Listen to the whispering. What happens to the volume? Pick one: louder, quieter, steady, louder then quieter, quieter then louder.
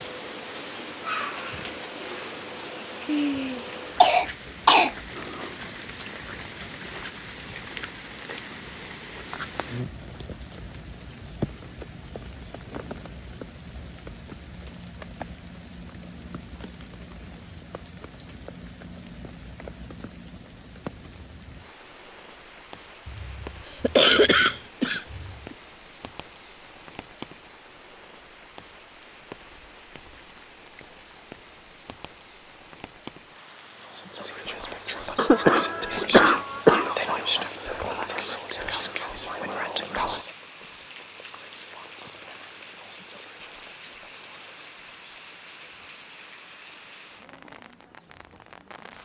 quieter.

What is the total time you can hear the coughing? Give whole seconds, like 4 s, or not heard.
6 s.